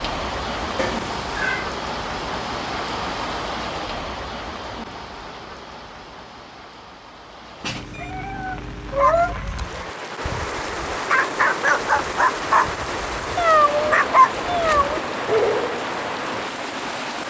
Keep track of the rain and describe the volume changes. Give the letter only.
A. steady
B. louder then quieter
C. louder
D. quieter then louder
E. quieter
D.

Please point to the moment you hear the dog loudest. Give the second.
14 s.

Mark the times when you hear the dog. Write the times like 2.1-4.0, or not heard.
8.9-15.8.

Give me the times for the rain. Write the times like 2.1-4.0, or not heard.
0.0-17.2.